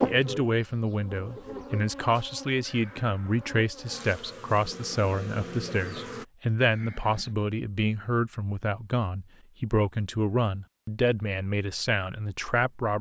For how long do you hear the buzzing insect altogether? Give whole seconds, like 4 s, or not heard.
6 s.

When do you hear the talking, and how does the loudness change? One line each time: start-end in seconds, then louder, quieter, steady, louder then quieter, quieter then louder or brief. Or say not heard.
0.0-12.9 steady.